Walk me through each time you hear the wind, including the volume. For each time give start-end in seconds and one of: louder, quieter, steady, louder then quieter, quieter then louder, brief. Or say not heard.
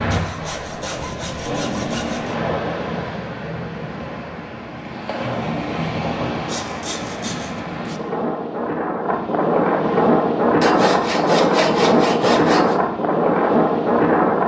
0.0-14.4 louder.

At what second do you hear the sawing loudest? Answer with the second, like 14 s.
11 s.